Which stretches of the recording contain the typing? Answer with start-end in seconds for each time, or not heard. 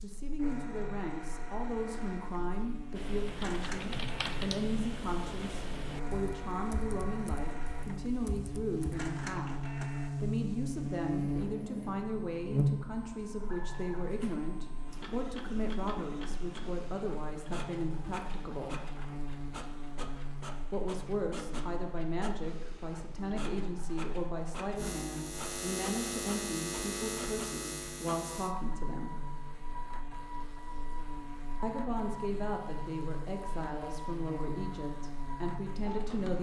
3.0-9.1.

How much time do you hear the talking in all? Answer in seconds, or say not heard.
31 s.